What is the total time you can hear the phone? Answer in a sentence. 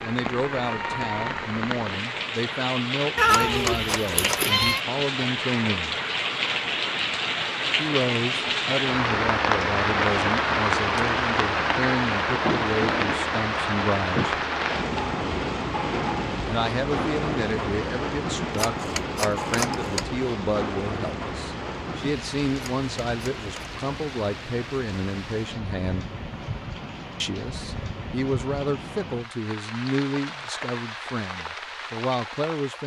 The phone can be heard for 4 seconds in total.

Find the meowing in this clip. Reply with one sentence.
The meowing can be heard from 3.1 to 4.8 s.